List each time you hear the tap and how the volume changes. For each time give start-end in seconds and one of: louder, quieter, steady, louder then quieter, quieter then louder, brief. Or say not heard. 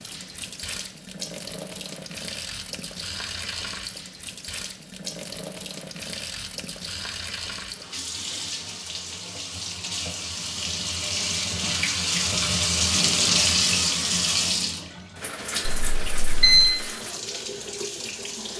0.0-18.5 louder then quieter.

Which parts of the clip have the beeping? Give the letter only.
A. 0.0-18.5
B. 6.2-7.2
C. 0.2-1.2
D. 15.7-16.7
D.